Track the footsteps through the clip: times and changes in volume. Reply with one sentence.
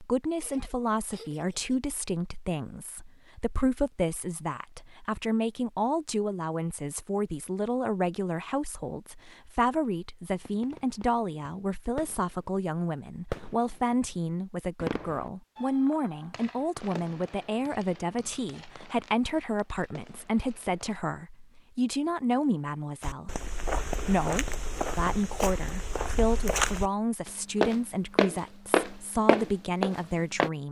The footsteps can be heard from 23.0 to 30.5 s, getting louder.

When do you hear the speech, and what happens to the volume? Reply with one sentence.
The speech can be heard from 0.0 to 30.6 s, at a steady volume.